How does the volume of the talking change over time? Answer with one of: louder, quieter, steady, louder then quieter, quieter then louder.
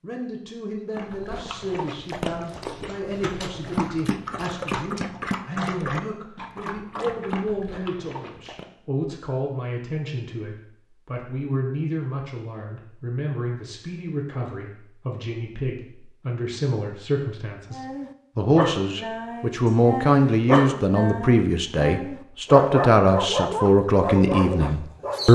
louder.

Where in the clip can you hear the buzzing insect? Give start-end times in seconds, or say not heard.
not heard.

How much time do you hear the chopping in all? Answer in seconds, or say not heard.
not heard.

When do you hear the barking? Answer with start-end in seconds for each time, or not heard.
0.9-8.7, 17.7-25.3.